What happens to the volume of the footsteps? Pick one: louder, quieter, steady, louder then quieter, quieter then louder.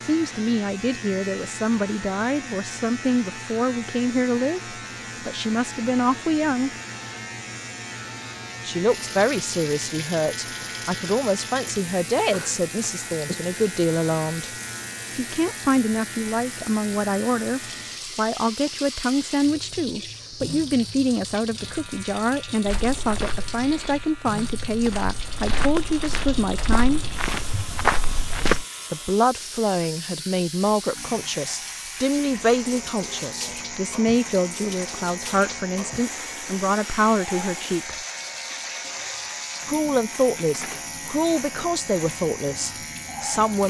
louder.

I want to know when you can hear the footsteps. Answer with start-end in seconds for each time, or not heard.
22.6-28.6.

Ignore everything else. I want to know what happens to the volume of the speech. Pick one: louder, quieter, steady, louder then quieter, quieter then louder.
steady.